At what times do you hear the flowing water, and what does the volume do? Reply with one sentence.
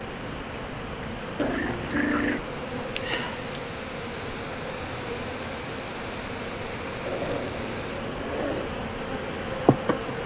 The flowing water can be heard from 0.0 to 10.2 s, at a steady volume.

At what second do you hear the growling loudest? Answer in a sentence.
The loudest moment of the growling is at 2 seconds.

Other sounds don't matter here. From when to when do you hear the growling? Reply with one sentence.
The growling can be heard from 1.4 to 2.4 s and from 7.0 to 8.7 s.